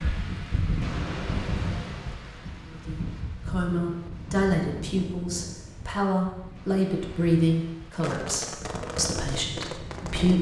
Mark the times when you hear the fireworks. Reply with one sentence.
The fireworks can be heard from 7.9 to 10.3 s.